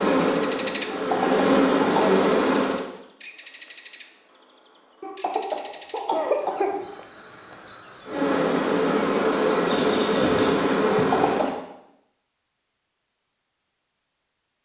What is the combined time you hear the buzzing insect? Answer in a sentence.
The buzzing insect can be heard for 6 seconds in total.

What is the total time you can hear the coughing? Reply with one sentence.
You can hear the coughing for 4 seconds altogether.